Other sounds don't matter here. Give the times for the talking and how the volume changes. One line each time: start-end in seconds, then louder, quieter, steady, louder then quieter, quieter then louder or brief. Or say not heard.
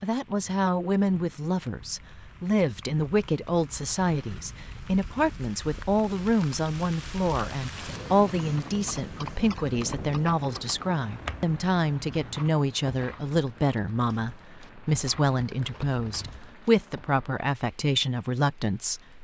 0.0-19.1 steady.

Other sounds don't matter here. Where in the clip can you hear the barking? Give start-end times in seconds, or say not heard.
not heard.